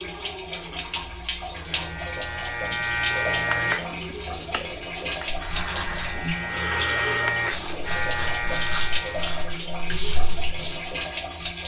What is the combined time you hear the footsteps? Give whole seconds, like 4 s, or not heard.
not heard.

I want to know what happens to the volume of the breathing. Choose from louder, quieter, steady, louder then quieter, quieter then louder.
steady.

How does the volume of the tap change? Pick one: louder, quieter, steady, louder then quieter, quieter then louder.
steady.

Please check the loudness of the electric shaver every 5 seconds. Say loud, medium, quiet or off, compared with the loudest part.
loud, loud, off.